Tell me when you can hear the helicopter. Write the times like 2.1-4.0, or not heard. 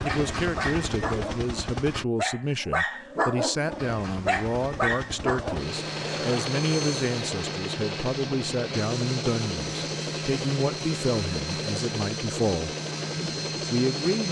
0.0-2.0, 3.7-14.2.